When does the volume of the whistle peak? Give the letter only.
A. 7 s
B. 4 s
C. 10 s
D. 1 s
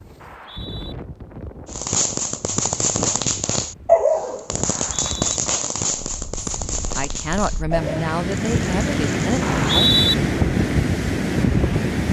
C.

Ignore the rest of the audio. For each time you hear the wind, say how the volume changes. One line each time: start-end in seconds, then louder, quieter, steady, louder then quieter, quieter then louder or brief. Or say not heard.
0.0-12.0 louder.